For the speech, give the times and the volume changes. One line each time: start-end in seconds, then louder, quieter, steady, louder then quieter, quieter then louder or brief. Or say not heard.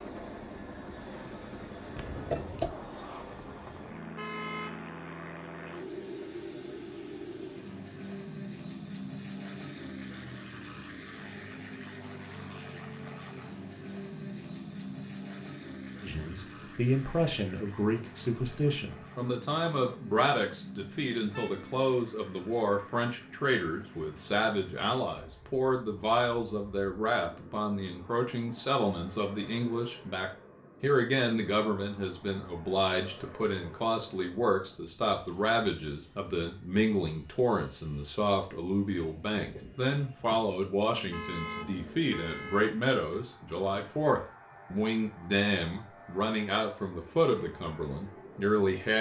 16.0-48.9 steady.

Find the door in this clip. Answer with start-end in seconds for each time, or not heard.
1.9-2.8.